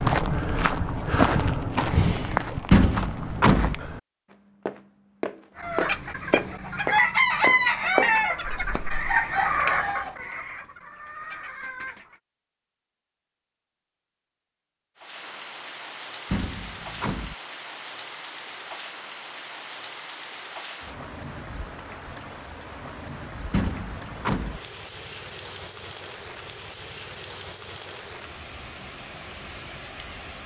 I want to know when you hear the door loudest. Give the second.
3 s.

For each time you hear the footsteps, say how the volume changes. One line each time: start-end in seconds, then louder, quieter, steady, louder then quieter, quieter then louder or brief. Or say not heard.
0.0-9.1 quieter then louder.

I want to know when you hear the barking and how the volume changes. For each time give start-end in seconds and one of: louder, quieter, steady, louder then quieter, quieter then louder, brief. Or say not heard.
not heard.